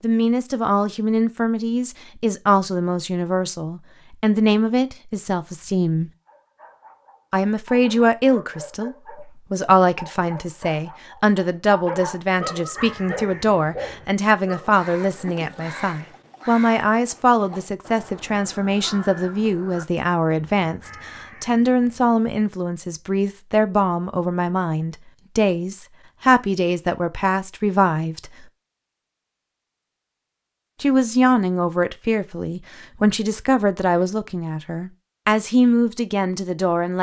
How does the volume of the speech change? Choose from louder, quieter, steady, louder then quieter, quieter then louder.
steady.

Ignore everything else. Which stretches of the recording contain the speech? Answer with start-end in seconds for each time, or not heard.
0.0-6.1, 7.3-28.4, 30.8-36.9.